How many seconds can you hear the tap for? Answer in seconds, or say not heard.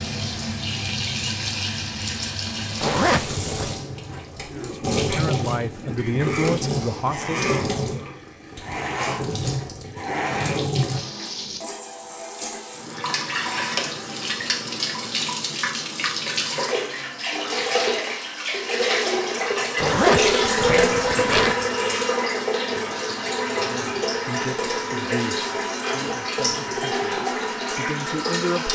29 s.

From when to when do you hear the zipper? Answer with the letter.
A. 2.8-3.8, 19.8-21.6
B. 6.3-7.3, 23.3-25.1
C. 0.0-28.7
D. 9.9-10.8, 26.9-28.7
A.